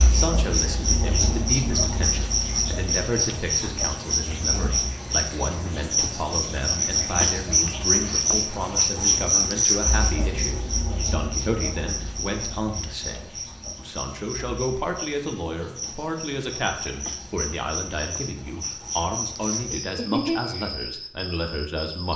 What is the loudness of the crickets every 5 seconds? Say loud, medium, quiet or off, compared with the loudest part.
loud, loud, medium, medium, medium.